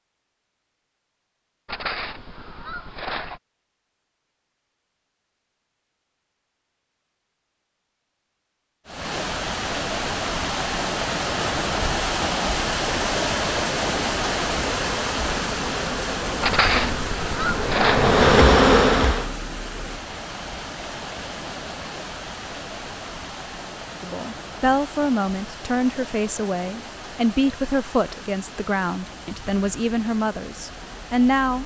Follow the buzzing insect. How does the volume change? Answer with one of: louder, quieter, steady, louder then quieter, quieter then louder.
louder.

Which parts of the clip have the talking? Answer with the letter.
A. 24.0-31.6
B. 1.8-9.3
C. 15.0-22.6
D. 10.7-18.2
A.